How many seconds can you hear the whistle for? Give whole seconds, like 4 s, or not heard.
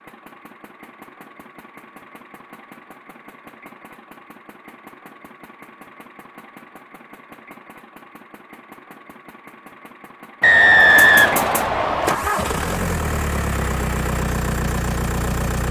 2 s.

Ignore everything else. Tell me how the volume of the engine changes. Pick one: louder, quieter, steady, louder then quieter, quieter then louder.
louder.